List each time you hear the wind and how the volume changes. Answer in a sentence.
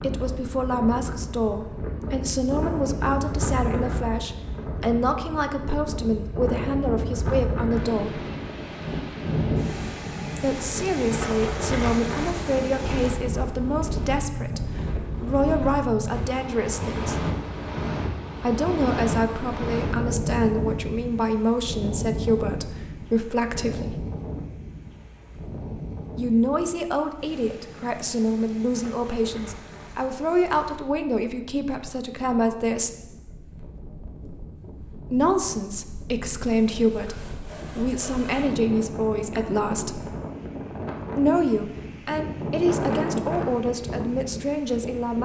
You can hear the wind from 0.0 to 45.1 s, getting quieter then louder.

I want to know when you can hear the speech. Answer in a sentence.
The speech can be heard from 0.0 to 8.2 s, from 10.4 to 17.2 s, from 18.4 to 24.0 s, from 26.1 to 32.9 s, from 35.1 to 40.1 s and from 41.1 to 45.1 s.